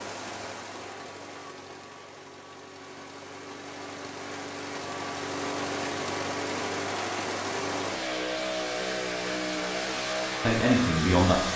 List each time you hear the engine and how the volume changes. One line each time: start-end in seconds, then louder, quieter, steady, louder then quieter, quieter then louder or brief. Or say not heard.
0.0-11.5 louder.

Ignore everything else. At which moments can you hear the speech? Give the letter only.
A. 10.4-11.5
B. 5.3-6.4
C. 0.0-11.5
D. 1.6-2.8
A.